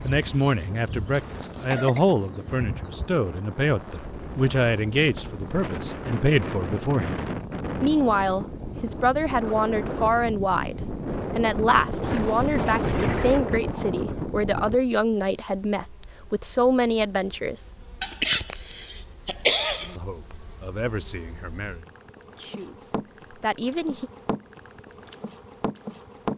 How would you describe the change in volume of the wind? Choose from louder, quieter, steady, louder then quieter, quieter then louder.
louder.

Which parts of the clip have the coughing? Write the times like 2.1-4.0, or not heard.
1.4-2.0, 12.2-13.1, 18.0-19.9.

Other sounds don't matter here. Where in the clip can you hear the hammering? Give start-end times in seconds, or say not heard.
not heard.